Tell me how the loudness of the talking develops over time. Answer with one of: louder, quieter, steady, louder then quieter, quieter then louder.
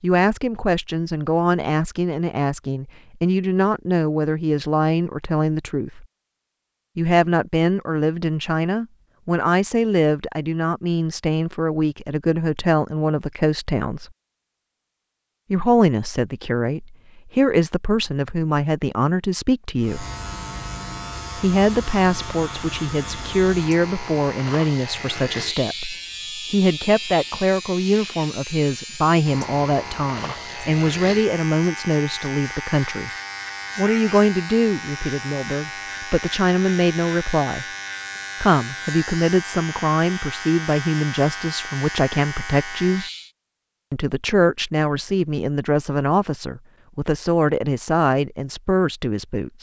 steady.